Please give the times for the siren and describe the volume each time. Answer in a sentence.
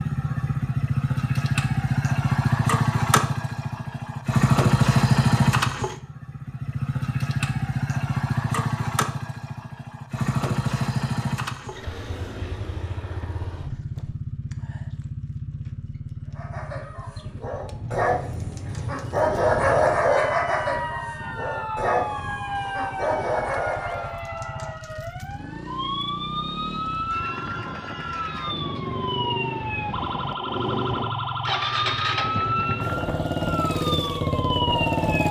You can hear the siren from 17.5 to 35.2 s, getting louder.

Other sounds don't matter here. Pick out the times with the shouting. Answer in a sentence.
You can't hear the shouting here.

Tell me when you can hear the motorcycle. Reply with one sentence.
You can hear the motorcycle from 0.0 to 35.2 s.